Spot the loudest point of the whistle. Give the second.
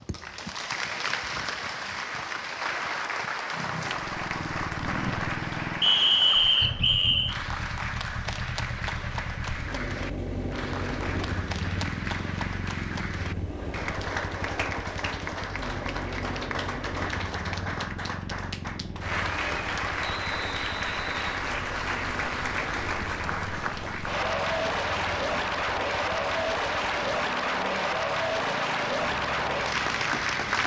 6 s.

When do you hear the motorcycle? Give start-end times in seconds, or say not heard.
3.5-30.6.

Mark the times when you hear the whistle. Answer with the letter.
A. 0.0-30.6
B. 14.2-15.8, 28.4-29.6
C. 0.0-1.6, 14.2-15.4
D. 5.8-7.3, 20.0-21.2
D.